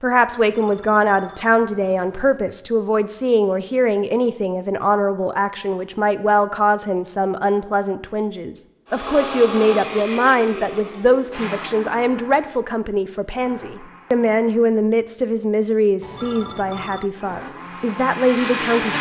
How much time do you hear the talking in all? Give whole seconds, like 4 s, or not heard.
19 s.